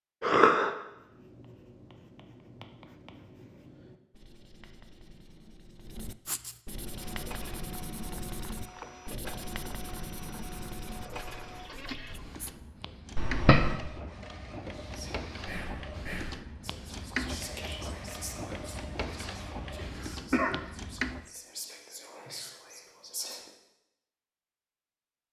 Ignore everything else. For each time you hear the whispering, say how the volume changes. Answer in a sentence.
You can hear the whispering from 14.8 to 23.5 s, getting quieter then louder.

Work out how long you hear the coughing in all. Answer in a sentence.
The coughing can be heard for 2 seconds in total.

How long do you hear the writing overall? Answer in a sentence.
The writing can be heard for 12 seconds in total.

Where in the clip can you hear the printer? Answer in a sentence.
You can hear the printer from 6.8 to 21.3 s.